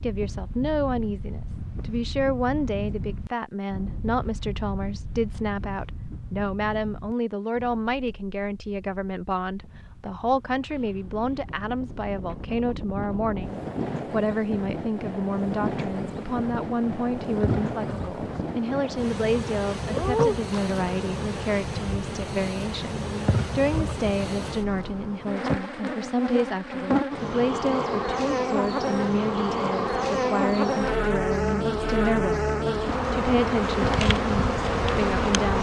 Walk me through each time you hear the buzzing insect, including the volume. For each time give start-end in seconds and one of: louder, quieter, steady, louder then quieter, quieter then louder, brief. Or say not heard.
15.9-35.5 louder.